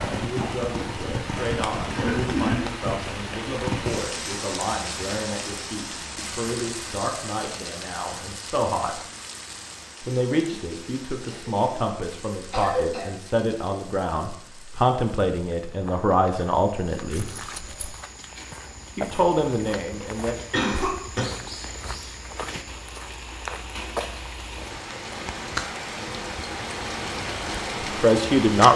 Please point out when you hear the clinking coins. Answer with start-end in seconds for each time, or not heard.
17.1-17.9.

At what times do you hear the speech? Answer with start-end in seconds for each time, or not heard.
0.1-9.0, 10.0-17.2, 18.9-20.4, 28.0-28.7.